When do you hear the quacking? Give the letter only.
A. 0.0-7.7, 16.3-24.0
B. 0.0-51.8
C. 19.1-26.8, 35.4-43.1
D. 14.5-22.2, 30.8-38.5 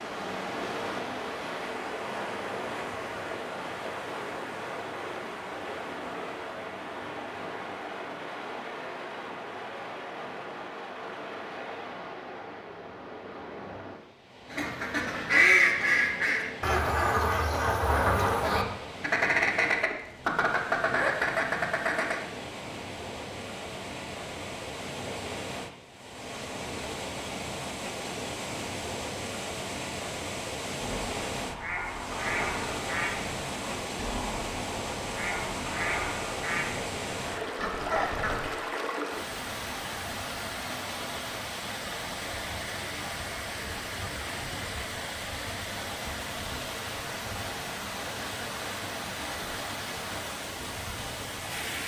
D.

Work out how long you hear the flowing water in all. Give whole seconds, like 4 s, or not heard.
52 s.